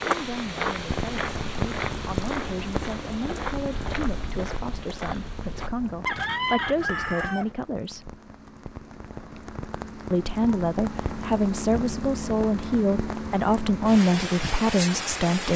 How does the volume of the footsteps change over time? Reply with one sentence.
The volume of the footsteps goes down.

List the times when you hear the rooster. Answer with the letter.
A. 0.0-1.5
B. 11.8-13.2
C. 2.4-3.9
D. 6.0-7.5
D.